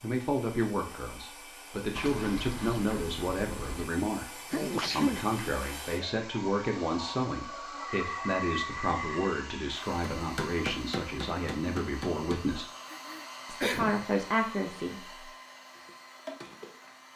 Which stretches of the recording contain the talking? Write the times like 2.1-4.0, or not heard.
0.0-4.2, 4.9-12.7, 13.4-15.2.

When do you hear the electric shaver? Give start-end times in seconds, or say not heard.
not heard.